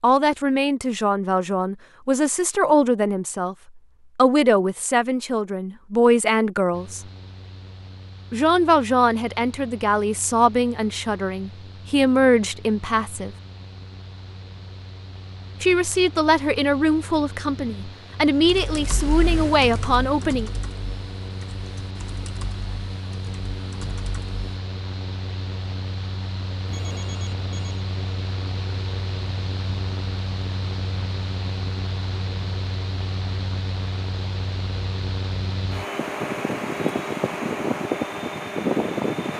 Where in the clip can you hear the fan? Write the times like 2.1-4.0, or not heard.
6.7-39.3.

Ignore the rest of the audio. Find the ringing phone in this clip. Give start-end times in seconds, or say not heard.
26.6-27.8.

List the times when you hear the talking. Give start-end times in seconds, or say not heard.
0.0-3.5, 4.2-7.0, 8.3-13.3, 15.6-20.5.